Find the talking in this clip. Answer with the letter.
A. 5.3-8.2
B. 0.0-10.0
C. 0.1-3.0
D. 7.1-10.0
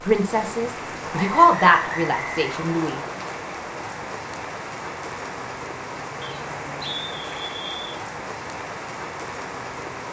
C.